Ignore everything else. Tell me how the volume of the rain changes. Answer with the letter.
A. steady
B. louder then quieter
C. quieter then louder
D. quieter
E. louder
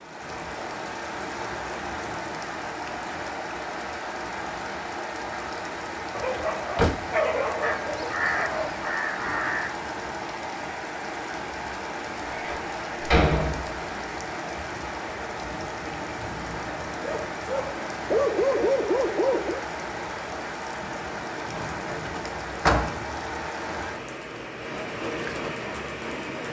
A.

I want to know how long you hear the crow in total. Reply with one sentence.
You can hear the crow for 2 seconds altogether.